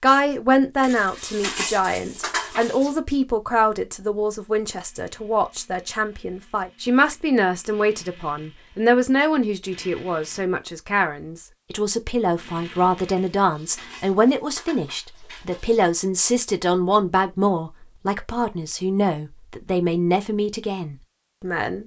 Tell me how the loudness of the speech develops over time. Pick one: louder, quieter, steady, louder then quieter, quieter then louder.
steady.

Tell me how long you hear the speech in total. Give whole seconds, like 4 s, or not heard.
22 s.